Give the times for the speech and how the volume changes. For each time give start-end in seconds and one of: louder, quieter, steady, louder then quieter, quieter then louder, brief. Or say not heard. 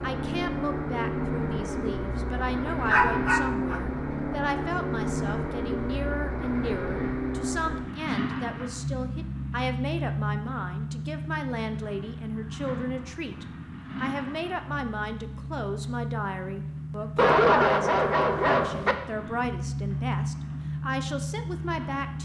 0.0-22.2 steady.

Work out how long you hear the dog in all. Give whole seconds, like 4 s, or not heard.
3 s.